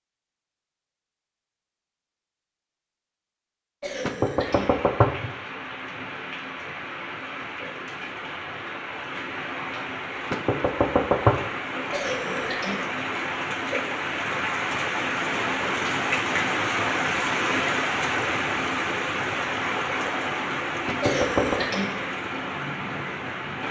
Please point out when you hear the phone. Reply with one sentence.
You can't hear the phone here.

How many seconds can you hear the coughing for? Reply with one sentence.
The coughing can be heard for 3 seconds in total.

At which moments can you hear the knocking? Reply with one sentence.
The knocking can be heard from 4.0 to 5.3 s, from 10.3 to 11.3 s and from 20.9 to 21.6 s.